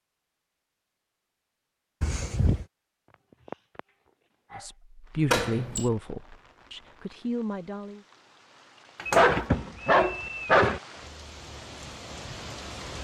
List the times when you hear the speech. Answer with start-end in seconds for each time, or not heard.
4.5-8.1.